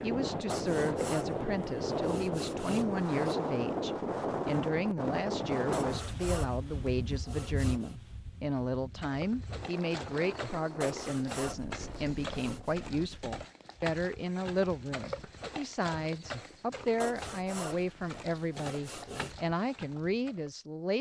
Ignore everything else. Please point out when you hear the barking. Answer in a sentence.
The barking can't be heard in this clip.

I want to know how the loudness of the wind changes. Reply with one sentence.
The volume of the wind goes down.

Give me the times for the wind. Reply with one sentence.
You can hear the wind from 0.0 to 13.4 s.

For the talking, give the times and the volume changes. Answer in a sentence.
The talking can be heard from 0.0 to 20.9 s, at a steady volume.